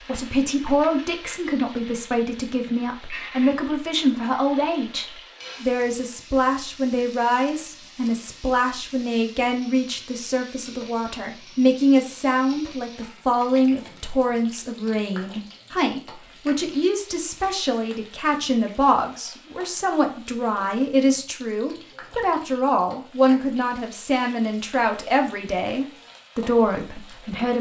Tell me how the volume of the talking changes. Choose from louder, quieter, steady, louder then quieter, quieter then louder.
steady.